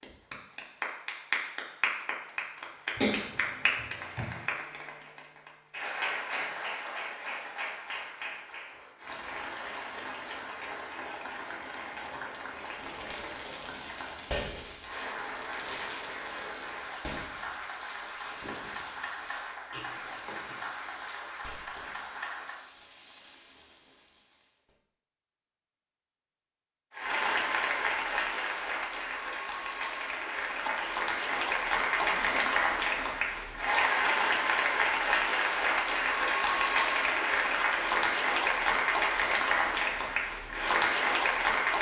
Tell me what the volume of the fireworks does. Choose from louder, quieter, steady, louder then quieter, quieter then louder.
quieter.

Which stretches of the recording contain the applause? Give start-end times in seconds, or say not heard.
0.0-22.6, 26.9-41.7.